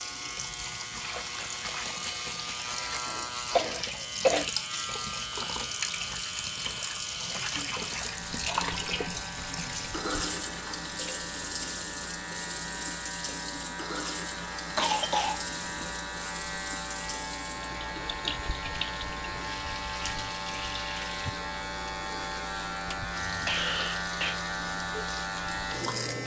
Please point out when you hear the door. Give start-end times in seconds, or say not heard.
not heard.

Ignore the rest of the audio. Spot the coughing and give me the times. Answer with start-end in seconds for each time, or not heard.
3.1-4.5, 14.8-15.9, 23.4-24.4.